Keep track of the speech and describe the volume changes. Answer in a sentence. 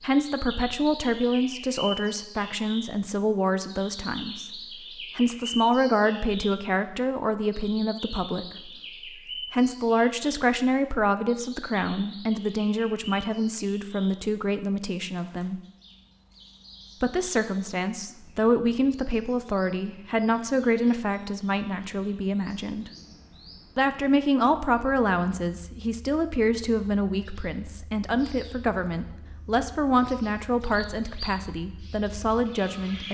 The loudness of the speech stays about the same.